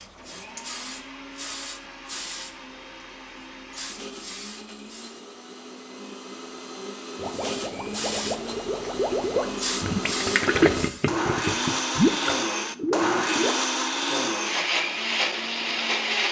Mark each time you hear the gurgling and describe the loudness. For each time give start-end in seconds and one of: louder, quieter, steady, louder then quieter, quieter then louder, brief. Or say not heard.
7.2-13.6 louder.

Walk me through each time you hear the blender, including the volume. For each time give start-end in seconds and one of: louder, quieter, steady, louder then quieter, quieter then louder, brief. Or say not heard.
0.0-16.2 louder.